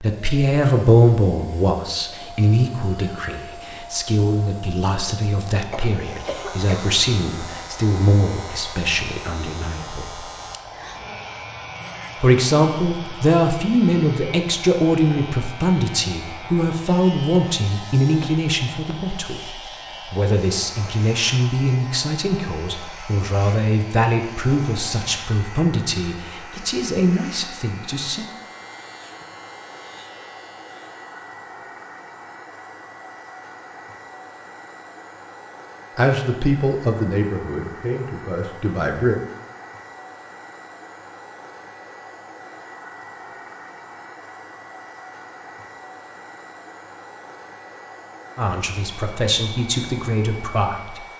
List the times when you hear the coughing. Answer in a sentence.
The coughing can be heard from 5.7 to 6.9 s.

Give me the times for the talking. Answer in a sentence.
The talking can be heard from 0.0 to 10.2 s, from 12.2 to 28.2 s, from 36.0 to 39.2 s and from 48.4 to 51.1 s.